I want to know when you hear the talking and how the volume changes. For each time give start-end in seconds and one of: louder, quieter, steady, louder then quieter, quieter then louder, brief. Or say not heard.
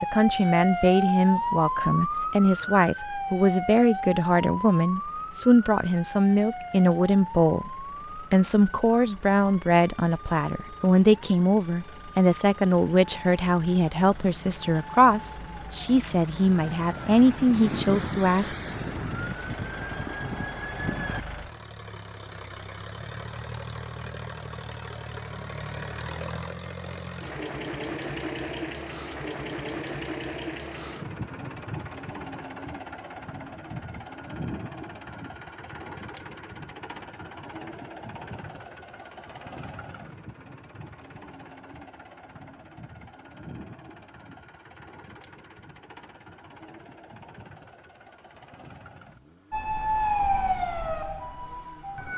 0.0-18.6 steady.